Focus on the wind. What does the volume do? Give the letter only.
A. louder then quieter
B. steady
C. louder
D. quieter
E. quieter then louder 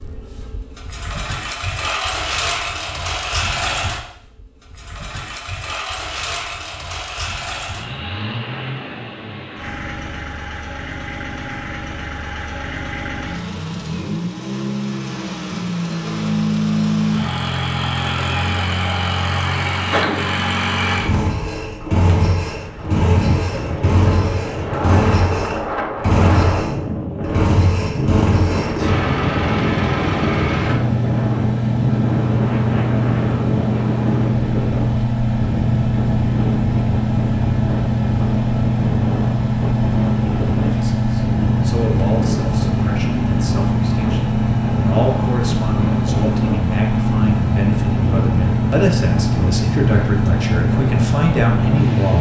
B.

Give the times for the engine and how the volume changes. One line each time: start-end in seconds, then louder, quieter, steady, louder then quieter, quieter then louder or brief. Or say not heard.
0.0-52.1 louder.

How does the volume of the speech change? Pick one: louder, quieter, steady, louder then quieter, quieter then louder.
louder.